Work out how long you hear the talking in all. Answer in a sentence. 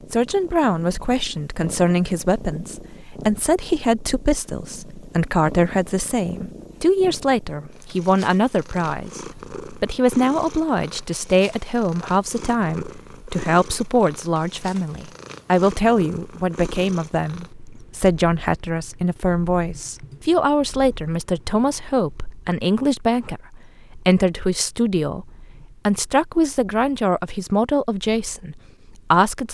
You can hear the talking for 29 seconds altogether.